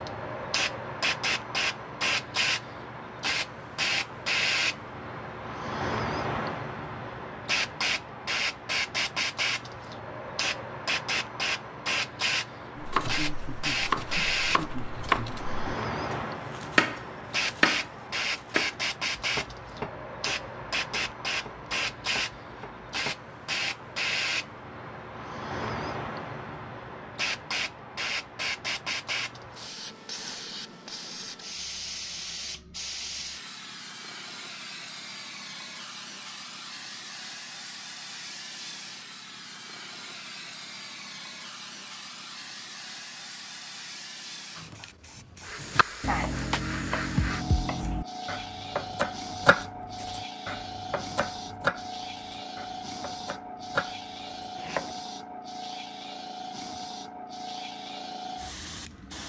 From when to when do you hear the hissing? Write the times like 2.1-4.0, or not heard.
0.0-59.2.